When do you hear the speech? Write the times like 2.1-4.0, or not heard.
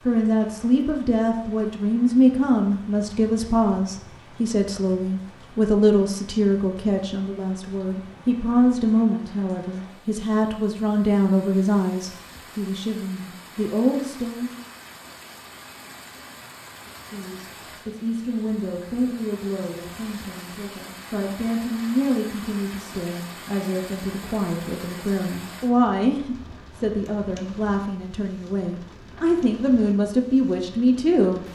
0.0-14.7, 17.1-31.4.